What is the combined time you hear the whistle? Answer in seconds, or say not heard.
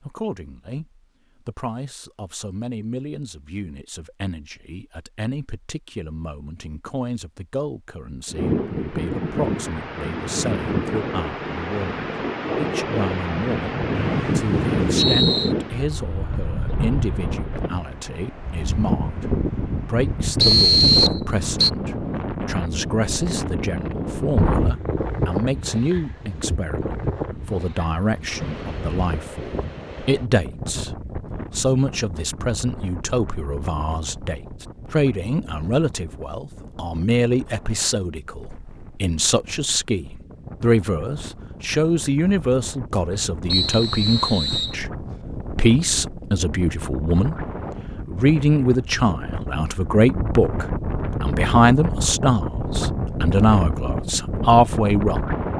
4 s.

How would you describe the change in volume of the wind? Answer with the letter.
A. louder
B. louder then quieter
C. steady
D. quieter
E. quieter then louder
E.